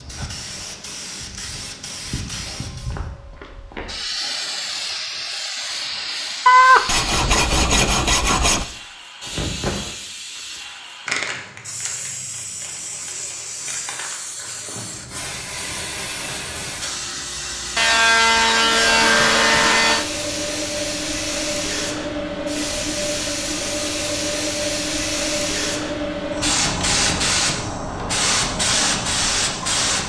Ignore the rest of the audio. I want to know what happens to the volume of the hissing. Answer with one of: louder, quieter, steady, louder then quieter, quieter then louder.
louder.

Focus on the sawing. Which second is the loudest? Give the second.
7 s.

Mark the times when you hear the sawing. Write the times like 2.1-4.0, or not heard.
6.5-8.7, 17.8-20.1.